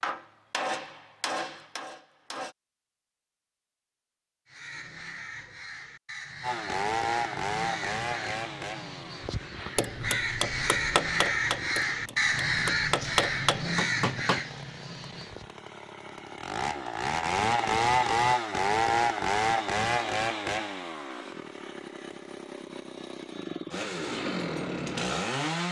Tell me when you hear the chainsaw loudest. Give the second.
18 s.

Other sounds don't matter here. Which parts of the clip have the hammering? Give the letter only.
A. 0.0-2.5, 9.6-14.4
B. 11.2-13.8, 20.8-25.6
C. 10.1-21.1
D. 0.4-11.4
A.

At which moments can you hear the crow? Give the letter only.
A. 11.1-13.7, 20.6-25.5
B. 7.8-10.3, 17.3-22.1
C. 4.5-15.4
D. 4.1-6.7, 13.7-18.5
C.